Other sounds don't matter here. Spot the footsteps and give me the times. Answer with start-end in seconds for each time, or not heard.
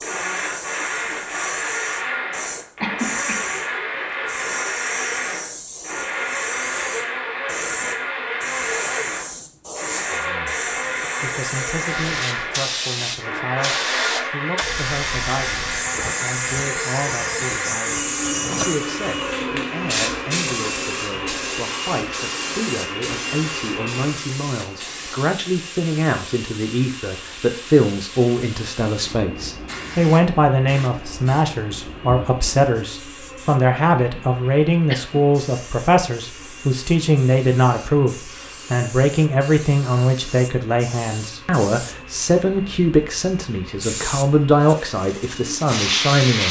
not heard.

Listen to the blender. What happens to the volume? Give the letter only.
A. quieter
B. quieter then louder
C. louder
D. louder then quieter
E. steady
A.